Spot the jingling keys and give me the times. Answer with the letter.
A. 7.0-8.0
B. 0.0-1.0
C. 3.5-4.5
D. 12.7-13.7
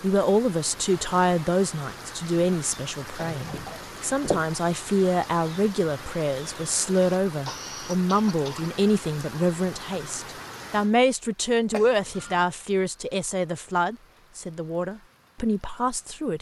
C.